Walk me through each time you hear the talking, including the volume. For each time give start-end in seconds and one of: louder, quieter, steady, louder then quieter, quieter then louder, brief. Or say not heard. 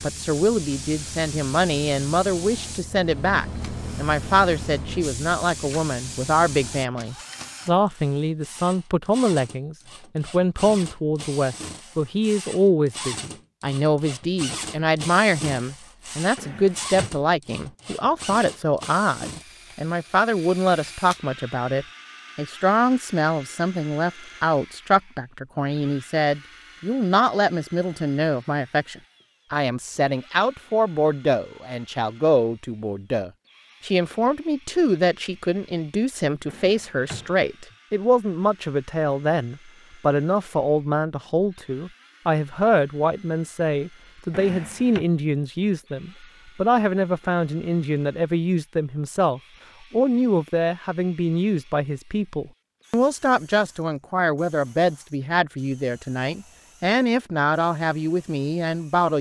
0.0-59.1 steady.